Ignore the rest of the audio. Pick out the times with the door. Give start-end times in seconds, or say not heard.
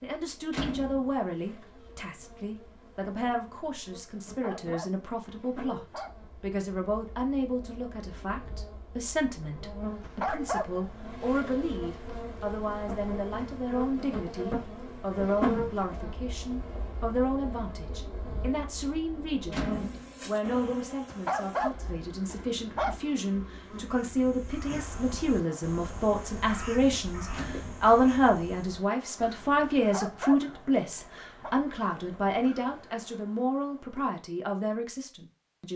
0.5-1.1, 19.5-20.1, 27.3-27.9.